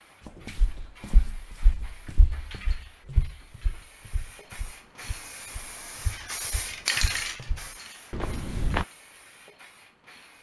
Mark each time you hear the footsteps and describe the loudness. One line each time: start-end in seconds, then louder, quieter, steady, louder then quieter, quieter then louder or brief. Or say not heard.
0.5-8.8 quieter then louder.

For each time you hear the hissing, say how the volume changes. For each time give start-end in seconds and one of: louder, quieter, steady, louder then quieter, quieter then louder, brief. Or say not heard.
0.0-10.3 louder then quieter.